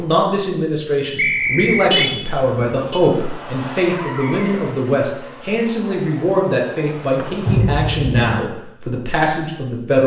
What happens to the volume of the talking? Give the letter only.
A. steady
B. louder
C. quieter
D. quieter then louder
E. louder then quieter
A.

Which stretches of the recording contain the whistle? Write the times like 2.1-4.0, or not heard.
1.1-2.0, 7.2-7.6.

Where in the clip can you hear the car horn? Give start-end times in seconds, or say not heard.
1.1-3.0, 7.5-8.3.